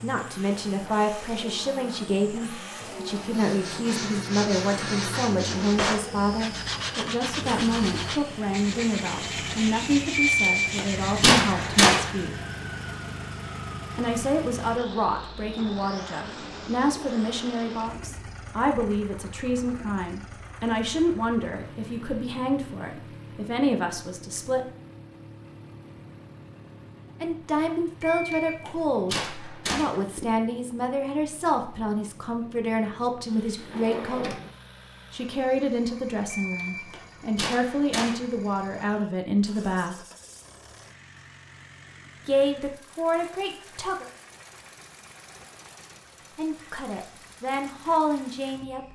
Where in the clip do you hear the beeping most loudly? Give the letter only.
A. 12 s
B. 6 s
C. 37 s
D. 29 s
A.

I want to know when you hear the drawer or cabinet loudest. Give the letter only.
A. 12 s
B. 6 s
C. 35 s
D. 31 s
B.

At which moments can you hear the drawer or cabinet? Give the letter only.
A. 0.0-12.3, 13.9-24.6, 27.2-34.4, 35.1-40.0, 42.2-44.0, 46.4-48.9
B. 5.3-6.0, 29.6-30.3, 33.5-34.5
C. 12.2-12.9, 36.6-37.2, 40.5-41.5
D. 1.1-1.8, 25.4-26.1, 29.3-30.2
B.